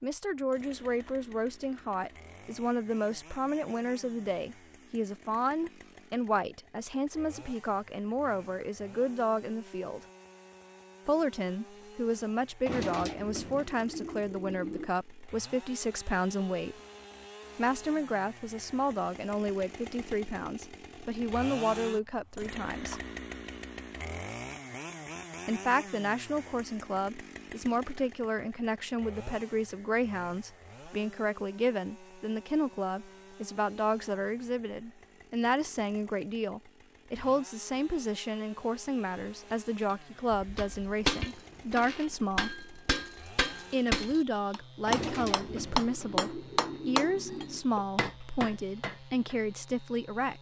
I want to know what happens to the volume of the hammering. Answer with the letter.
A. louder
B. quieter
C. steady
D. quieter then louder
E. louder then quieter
E.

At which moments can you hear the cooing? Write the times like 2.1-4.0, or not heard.
12.7-14.9, 44.9-47.6.